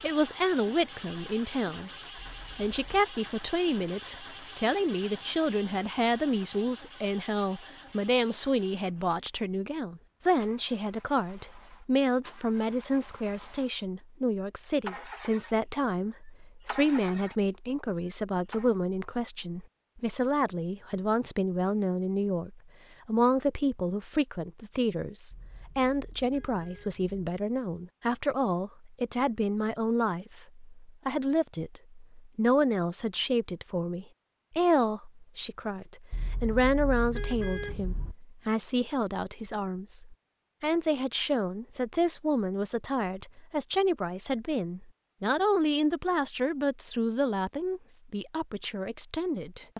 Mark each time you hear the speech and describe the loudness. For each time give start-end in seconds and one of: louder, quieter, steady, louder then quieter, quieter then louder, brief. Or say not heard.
0.0-1.9 brief
2.5-49.7 steady.